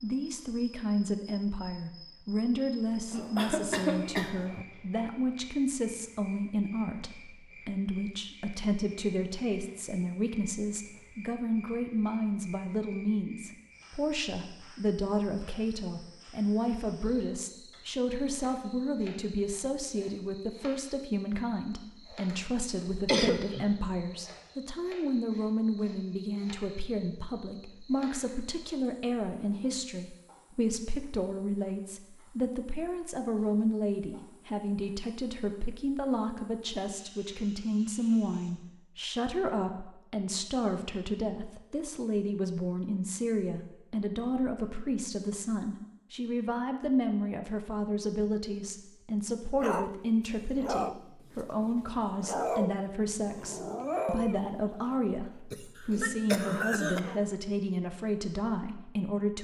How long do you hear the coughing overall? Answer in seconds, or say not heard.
4 s.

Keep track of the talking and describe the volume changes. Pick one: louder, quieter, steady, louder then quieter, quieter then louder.
steady.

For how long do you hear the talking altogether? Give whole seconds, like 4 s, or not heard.
59 s.